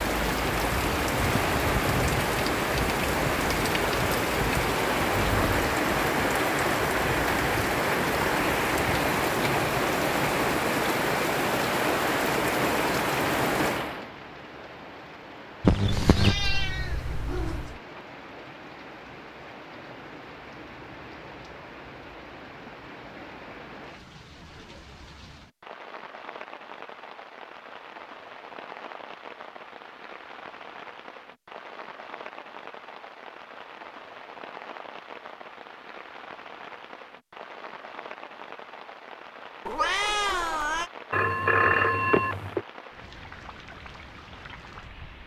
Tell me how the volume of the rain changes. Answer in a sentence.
The loudness of the rain goes down.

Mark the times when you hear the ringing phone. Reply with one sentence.
The ringing phone can be heard from 15.6 to 16.4 s and from 41.1 to 42.6 s.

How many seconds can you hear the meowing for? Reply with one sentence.
The meowing can be heard for 4 seconds in total.